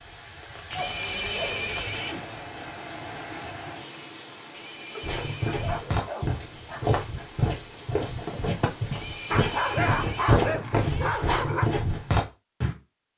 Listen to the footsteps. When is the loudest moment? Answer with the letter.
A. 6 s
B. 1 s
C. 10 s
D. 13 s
C.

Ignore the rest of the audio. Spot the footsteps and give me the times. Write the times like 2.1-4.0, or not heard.
5.0-12.8.